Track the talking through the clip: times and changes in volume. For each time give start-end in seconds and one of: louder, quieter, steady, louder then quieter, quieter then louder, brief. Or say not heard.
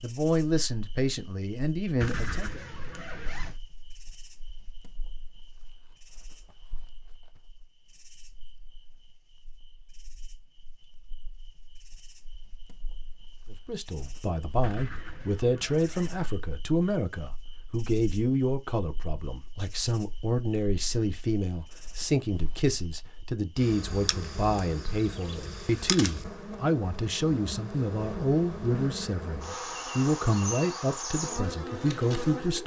0.0-2.6 brief
13.5-32.6 steady.